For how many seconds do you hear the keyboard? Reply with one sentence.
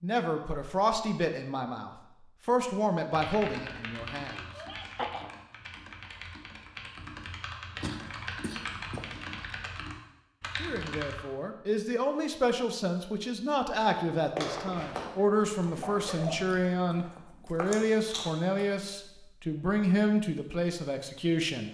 The keyboard can be heard for 8 seconds in total.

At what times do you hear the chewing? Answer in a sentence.
The chewing can be heard from 14.2 to 18.6 s.